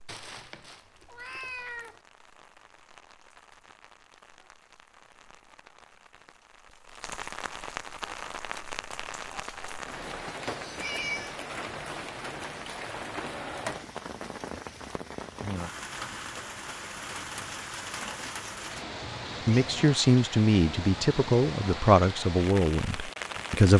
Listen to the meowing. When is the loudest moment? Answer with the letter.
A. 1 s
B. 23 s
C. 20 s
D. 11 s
D.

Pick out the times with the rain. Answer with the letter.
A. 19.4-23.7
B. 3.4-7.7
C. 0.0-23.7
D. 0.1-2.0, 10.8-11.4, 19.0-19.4
C.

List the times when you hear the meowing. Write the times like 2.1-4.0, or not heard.
0.1-2.0, 10.8-11.4, 19.0-19.4.